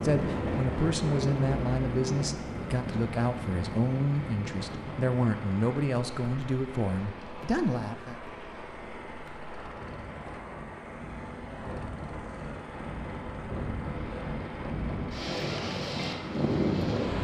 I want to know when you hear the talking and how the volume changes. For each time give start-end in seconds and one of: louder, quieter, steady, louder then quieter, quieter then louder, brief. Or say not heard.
0.0-8.2 steady.